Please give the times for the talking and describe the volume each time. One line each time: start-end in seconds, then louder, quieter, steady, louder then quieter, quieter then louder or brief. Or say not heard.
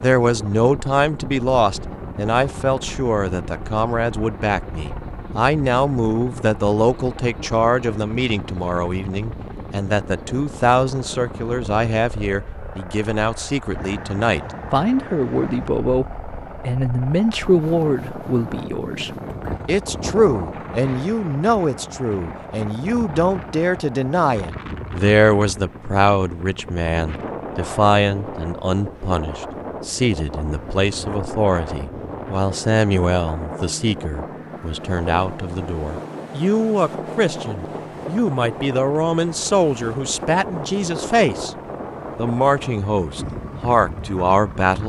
0.0-41.5 steady
42.1-44.8 brief.